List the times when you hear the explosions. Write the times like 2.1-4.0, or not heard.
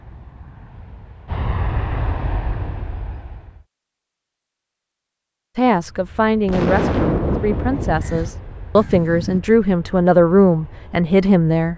6.5-8.0.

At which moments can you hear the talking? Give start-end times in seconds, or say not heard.
5.5-11.7.